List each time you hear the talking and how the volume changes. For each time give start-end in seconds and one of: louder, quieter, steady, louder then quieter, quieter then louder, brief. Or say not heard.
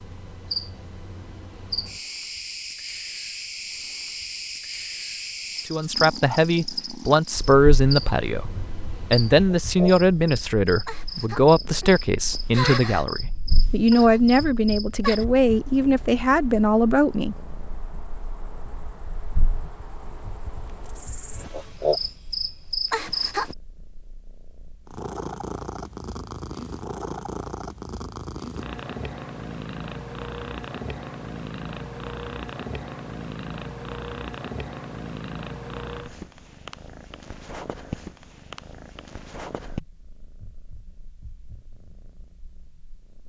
5.7-17.4 steady.